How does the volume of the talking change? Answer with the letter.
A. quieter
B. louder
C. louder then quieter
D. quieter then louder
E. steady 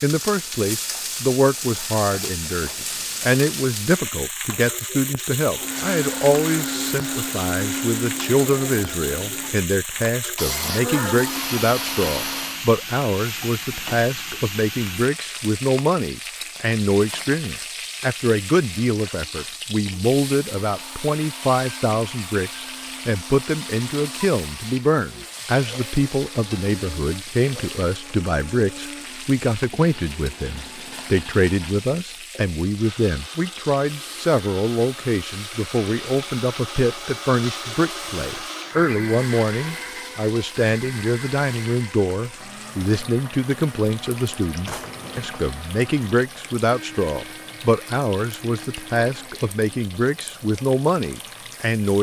E.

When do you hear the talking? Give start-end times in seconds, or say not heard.
0.0-51.9.